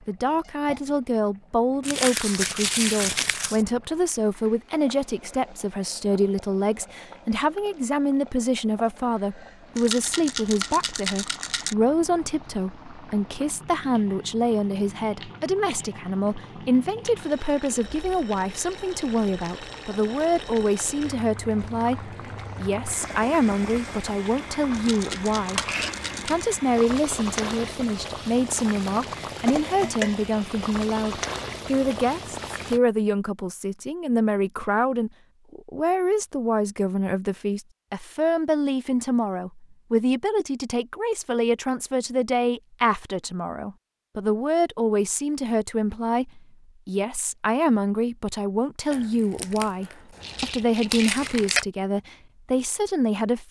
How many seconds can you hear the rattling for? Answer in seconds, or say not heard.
5 s.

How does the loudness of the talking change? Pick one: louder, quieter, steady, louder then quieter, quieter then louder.
steady.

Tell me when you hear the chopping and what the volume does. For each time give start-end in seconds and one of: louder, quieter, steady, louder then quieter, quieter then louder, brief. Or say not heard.
not heard.